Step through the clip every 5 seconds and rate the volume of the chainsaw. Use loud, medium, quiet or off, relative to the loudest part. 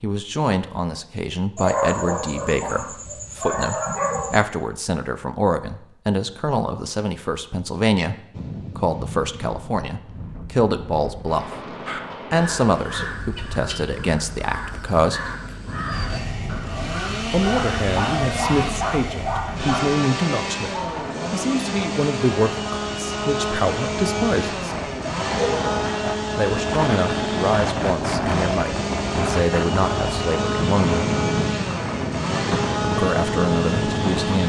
off, off, off, loud, loud, loud, loud.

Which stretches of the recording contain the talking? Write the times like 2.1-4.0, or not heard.
0.0-15.3, 17.3-24.6, 26.4-31.0, 32.9-34.4.